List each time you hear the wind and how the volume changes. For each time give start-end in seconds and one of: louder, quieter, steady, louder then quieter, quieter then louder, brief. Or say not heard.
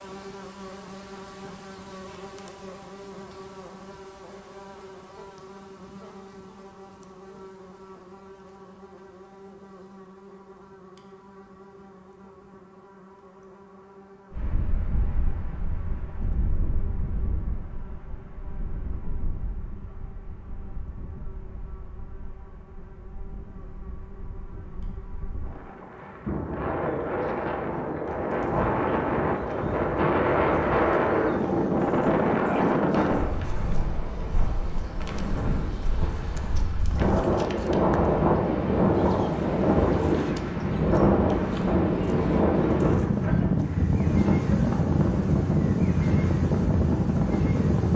14.3-47.9 louder.